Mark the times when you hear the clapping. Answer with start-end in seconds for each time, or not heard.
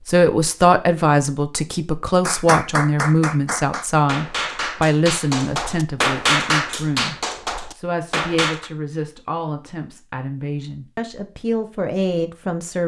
2.2-8.7.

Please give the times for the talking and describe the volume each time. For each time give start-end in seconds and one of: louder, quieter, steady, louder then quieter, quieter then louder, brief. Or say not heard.
0.1-12.8 quieter.